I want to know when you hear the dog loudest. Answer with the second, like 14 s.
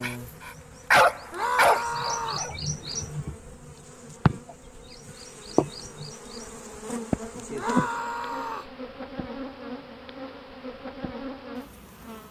1 s.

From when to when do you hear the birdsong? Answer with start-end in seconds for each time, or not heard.
0.2-7.2.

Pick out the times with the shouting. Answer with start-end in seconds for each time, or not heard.
1.3-2.5, 7.5-8.8.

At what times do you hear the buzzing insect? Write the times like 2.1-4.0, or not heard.
0.0-12.2.